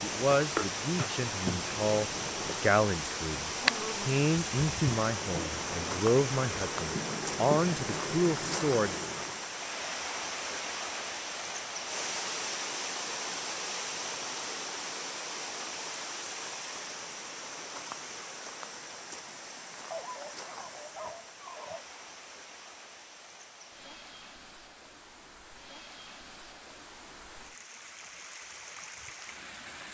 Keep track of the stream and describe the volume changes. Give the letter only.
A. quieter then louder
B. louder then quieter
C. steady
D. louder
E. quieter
E.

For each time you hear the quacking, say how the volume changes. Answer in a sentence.
You can't hear the quacking here.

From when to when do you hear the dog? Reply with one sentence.
The dog can be heard from 19.9 to 21.9 s.